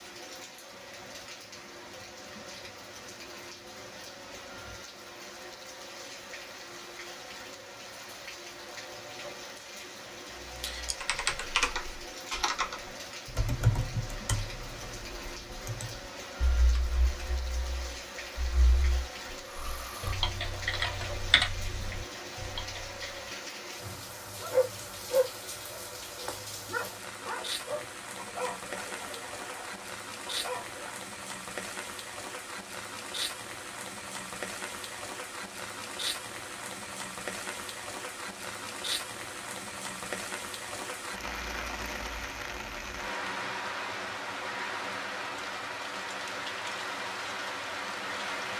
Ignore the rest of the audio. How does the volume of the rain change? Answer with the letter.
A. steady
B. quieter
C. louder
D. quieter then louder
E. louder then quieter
C.